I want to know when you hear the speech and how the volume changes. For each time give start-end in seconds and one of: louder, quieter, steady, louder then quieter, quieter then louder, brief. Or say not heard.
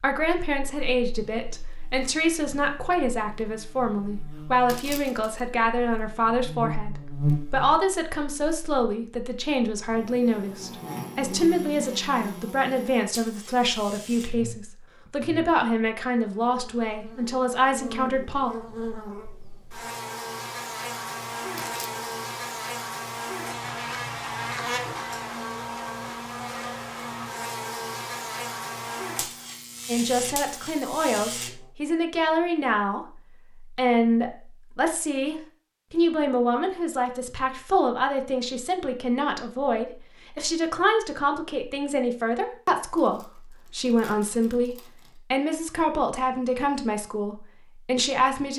0.0-18.5 steady
29.9-48.5 steady.